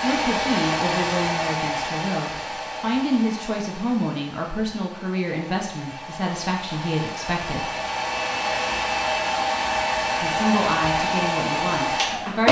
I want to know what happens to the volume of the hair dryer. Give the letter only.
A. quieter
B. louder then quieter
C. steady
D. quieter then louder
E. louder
D.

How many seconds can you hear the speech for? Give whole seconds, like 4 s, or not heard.
10 s.